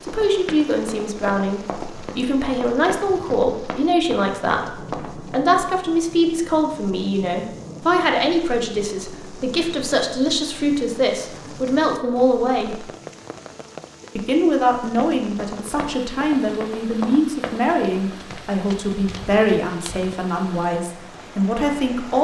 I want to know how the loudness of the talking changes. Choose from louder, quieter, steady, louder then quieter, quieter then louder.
steady.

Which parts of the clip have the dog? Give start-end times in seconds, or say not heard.
not heard.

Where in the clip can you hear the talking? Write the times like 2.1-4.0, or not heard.
0.0-12.9, 14.2-22.1.